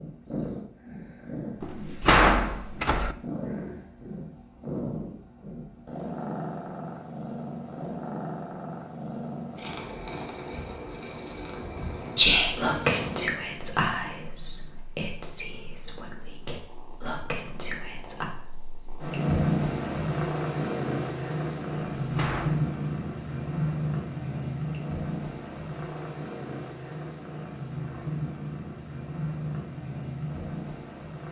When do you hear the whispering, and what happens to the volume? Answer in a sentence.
The whispering can be heard from 12.2 to 18.2 s, getting quieter.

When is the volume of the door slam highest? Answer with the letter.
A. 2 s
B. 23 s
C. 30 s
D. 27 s
A.